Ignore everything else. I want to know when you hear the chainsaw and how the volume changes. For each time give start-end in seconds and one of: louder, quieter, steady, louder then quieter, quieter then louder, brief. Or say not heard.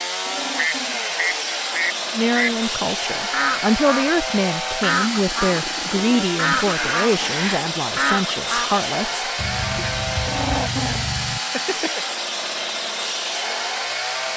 0.0-14.3 steady.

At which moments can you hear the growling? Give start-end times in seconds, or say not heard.
0.2-1.2, 5.1-7.7, 10.2-12.1.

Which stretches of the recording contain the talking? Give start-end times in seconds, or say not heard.
2.1-9.8.